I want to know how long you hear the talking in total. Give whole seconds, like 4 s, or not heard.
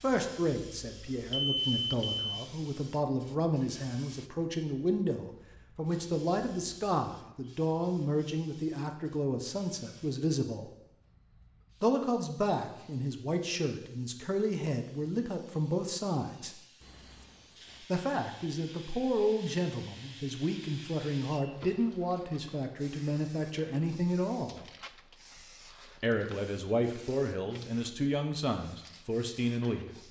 26 s.